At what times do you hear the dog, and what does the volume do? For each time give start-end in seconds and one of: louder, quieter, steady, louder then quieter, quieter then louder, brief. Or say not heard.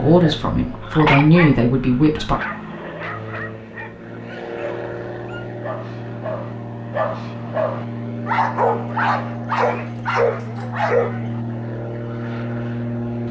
0.2-11.3 quieter then louder.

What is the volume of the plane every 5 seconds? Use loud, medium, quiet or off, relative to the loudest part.
medium, loud, loud.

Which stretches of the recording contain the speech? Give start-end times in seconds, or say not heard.
0.0-2.4.